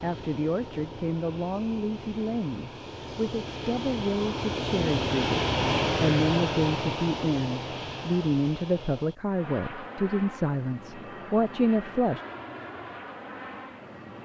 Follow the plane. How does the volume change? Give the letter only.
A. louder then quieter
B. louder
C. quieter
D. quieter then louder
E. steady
A.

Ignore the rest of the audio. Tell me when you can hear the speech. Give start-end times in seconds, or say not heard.
0.0-12.2.